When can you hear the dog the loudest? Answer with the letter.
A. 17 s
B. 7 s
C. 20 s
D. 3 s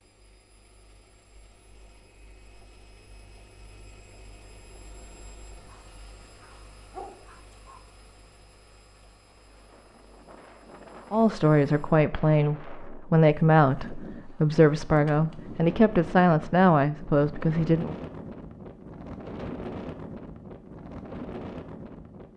B.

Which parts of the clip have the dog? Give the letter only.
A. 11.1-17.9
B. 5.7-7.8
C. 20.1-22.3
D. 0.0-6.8
B.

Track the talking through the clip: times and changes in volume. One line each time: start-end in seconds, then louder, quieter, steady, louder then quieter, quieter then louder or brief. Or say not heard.
11.1-17.9 steady.